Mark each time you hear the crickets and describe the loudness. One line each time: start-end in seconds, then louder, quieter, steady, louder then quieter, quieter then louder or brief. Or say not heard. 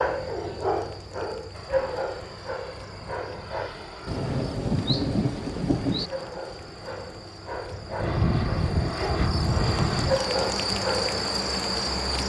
0.0-12.2 louder.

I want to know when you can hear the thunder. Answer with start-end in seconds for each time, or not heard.
4.0-6.1.